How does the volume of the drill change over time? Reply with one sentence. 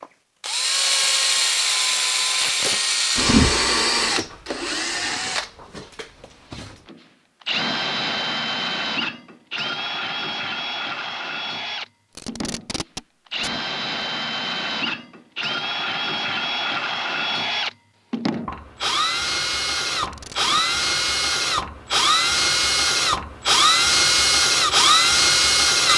The loudness of the drill goes down, then up.